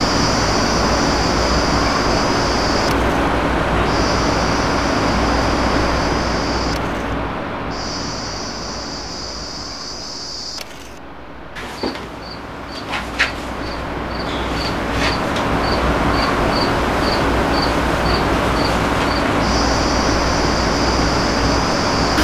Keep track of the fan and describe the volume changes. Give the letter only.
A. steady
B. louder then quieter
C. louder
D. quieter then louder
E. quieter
D.